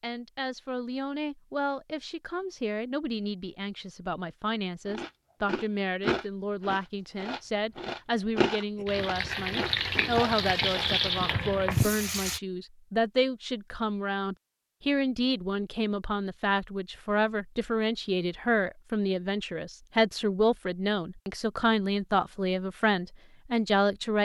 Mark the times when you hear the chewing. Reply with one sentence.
You can hear the chewing from 4.8 to 10.9 s.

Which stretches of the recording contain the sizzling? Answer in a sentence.
The sizzling can be heard from 8.8 to 12.4 s.